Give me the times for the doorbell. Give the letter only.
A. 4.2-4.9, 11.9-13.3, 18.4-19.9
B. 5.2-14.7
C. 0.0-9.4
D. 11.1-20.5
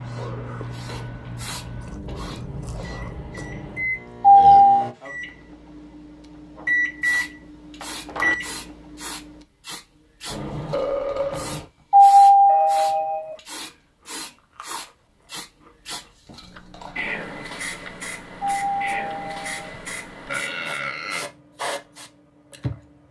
A.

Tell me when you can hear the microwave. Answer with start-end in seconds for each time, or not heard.
0.0-9.4.